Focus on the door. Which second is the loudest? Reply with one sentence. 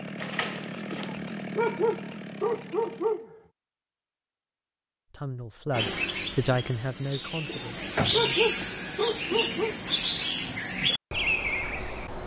The volume of the door peaks at 8 seconds.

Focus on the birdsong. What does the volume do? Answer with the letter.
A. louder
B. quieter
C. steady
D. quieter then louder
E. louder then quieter
A.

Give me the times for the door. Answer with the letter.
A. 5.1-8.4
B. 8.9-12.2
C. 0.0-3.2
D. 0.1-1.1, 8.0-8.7
D.